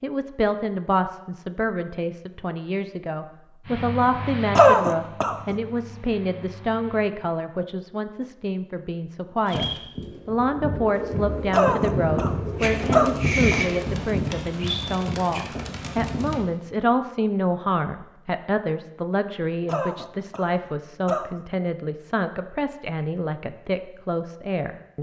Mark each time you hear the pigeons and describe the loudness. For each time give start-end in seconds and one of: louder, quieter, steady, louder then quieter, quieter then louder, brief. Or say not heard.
9.4-16.4 louder then quieter.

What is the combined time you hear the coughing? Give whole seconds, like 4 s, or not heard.
5 s.